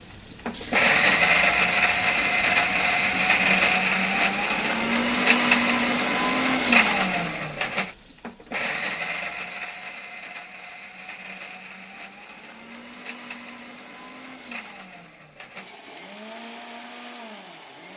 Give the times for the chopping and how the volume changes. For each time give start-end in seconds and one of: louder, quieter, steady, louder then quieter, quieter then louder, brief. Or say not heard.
not heard.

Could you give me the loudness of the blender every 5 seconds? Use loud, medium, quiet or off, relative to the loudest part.
loud, loud, quiet, quiet.